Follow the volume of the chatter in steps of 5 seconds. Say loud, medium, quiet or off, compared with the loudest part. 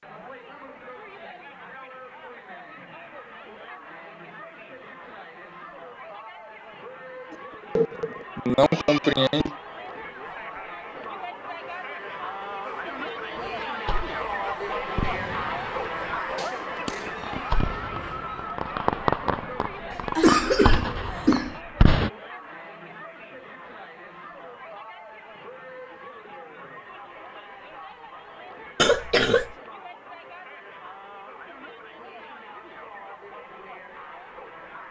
medium, medium, loud, loud, medium, medium, medium.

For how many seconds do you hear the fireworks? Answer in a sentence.
The fireworks can be heard for 9 seconds in total.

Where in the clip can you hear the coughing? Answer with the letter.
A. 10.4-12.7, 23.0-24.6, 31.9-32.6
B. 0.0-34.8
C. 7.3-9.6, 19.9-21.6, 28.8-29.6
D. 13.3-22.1
C.